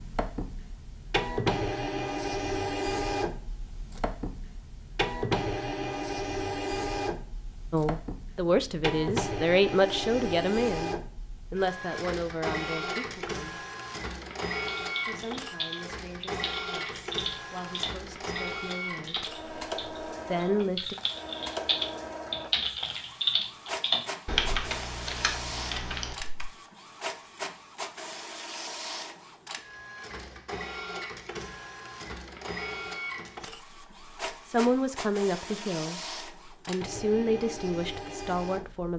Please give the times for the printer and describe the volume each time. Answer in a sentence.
The printer can be heard from 0.0 to 38.9 s, getting quieter.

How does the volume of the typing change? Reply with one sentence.
The loudness of the typing goes up, then down.